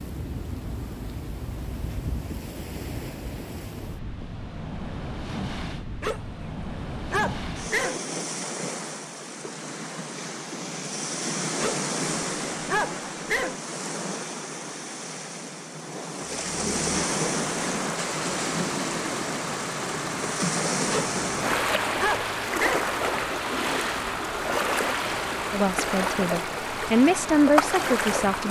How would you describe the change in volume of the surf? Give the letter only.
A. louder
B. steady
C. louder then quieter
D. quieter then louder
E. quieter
A.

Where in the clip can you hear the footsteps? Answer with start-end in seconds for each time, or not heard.
not heard.